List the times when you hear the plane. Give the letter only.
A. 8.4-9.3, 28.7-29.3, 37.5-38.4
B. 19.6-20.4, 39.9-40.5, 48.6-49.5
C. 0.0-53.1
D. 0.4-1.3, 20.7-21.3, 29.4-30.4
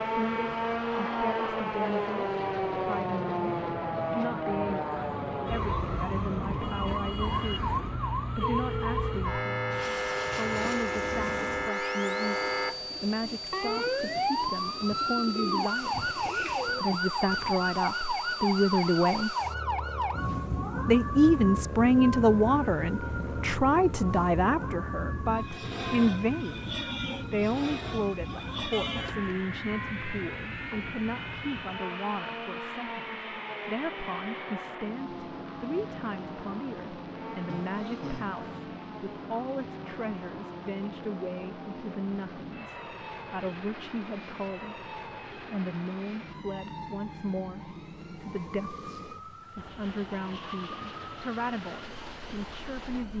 C.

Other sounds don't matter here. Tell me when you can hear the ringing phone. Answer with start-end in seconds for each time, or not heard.
8.4-9.3, 28.7-29.3, 37.5-38.4.